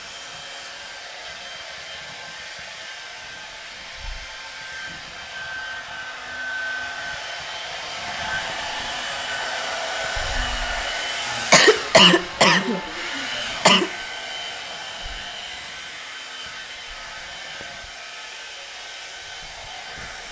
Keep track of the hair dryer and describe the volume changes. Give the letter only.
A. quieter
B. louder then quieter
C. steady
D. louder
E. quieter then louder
B.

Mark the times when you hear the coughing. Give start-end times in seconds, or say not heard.
11.2-13.9.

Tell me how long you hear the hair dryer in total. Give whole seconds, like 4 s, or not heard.
20 s.